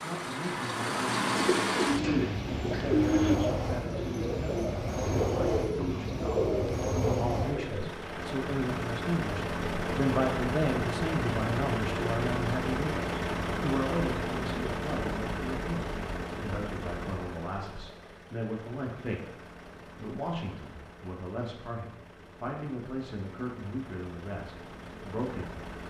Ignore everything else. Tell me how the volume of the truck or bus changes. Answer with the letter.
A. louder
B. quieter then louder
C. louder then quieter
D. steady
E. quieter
E.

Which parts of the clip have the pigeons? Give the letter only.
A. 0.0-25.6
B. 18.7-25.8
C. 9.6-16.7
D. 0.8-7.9
D.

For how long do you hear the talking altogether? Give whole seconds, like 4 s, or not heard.
26 s.